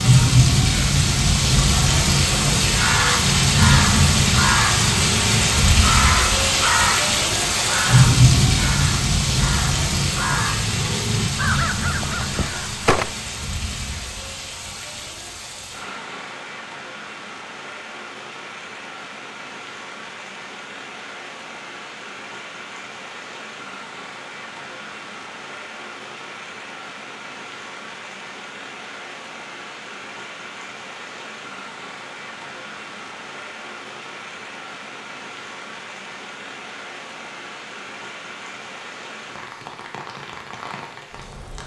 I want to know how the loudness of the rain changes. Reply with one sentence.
The loudness of the rain goes down.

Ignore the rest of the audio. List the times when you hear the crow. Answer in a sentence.
The crow can be heard from 2.6 to 13.2 s.